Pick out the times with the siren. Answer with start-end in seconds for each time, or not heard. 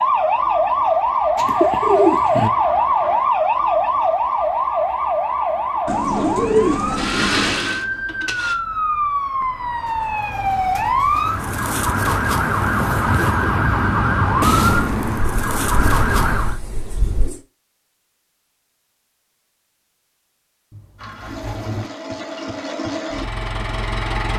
0.0-16.6.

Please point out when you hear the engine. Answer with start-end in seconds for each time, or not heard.
7.0-8.6, 20.9-24.3.